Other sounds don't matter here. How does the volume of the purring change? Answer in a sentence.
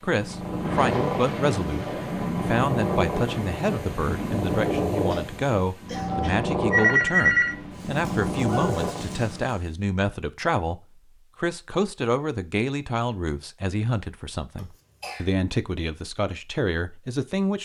The volume of the purring stays about the same.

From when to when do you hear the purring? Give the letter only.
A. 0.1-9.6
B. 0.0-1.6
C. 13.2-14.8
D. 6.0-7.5
A.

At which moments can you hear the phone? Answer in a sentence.
You can hear the phone from 6.0 to 7.5 s.